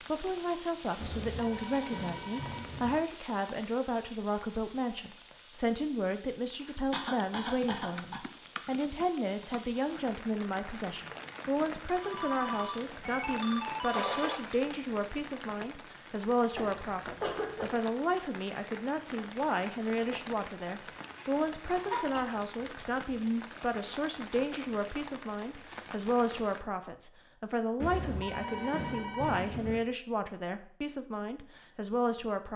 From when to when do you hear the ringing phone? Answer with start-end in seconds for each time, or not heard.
0.9-3.0, 11.9-14.4, 27.8-29.8.